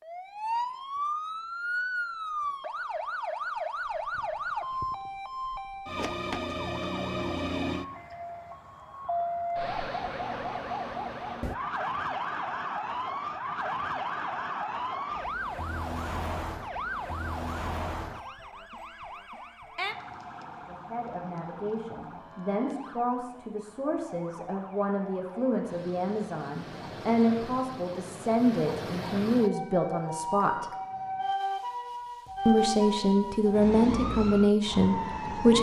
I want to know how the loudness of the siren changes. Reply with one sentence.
The volume of the siren goes down, then up.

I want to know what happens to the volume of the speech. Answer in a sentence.
The volume of the speech goes up.